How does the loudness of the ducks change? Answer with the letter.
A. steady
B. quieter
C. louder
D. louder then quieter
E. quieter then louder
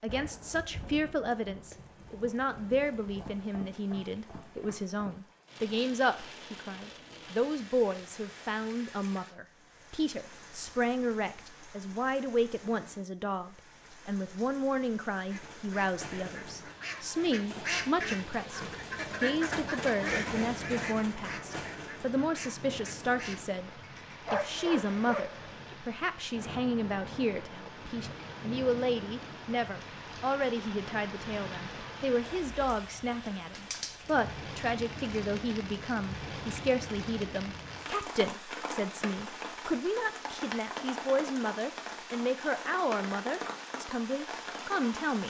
D.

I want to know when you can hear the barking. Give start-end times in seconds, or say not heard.
24.2-25.8.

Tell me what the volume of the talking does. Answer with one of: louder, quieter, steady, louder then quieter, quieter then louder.
steady.